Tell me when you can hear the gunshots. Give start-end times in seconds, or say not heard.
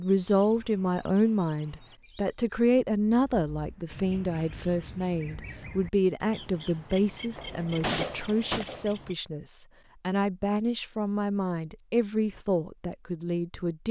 7.3-8.8.